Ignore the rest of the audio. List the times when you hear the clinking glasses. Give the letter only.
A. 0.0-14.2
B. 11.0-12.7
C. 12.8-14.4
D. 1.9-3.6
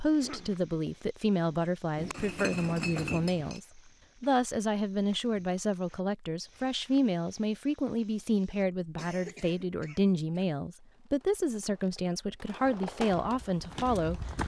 D.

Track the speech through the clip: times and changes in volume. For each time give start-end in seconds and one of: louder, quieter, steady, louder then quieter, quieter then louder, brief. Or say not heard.
0.0-14.2 steady.